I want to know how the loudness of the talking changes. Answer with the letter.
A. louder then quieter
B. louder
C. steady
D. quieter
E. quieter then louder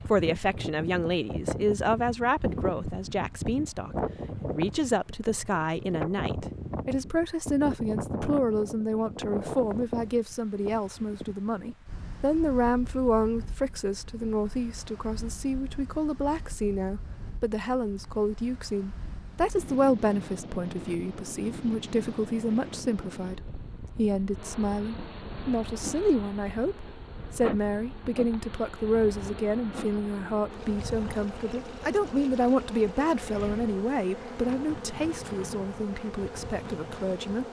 C.